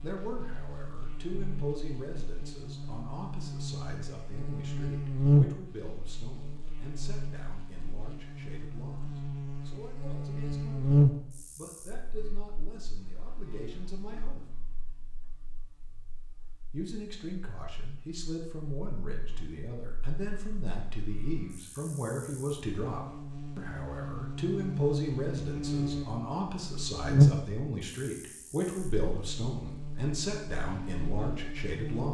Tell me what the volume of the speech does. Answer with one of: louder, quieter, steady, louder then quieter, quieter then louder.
quieter then louder.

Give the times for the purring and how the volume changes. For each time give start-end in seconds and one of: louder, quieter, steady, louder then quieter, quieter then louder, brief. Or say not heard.
not heard.